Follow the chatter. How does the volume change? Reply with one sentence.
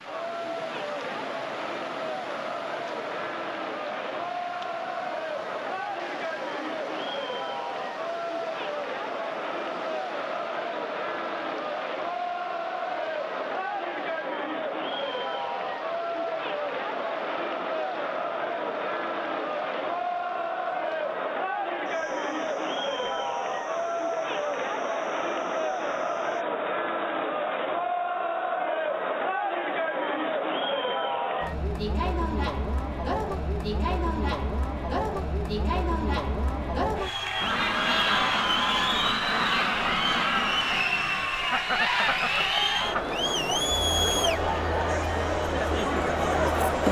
The volume of the chatter goes up.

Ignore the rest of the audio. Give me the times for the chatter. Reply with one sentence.
The chatter can be heard from 0.0 to 46.8 s.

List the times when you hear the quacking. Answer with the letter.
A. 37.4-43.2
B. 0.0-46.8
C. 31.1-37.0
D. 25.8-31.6
A.